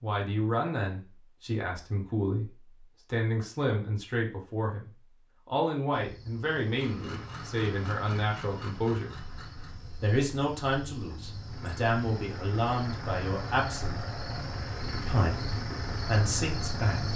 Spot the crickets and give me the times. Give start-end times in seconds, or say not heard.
5.9-17.1.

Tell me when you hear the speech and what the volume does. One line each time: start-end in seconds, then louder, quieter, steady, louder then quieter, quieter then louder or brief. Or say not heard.
0.0-9.1 steady
10.0-14.0 quieter then louder
14.9-17.1 brief.